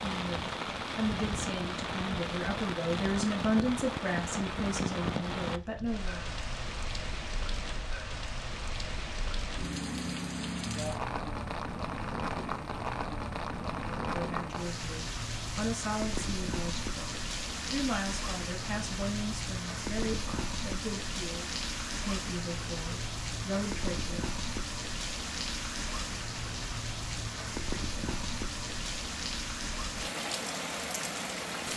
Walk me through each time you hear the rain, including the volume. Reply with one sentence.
You can hear the rain from 0.0 to 31.7 s, at a steady volume.